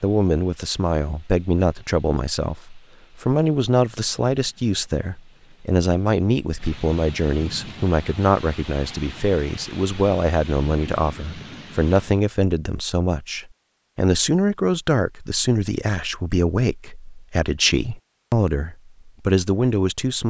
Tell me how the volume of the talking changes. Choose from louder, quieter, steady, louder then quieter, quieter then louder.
steady.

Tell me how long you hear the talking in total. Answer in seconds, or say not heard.
20 s.